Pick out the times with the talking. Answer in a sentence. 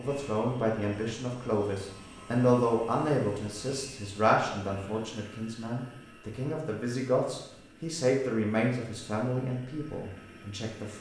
The talking can be heard from 0.0 to 10.9 s.